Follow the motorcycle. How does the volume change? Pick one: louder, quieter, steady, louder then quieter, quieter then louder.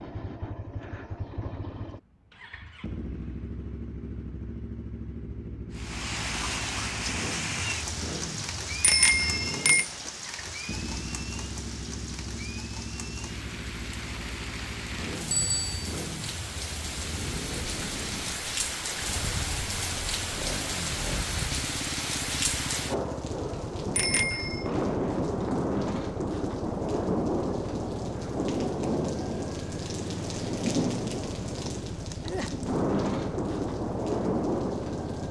steady.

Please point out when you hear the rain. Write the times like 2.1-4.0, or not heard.
5.8-35.2.